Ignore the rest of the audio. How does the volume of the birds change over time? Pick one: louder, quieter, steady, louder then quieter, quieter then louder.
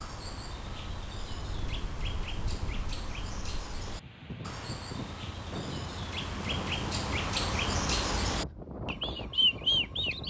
louder.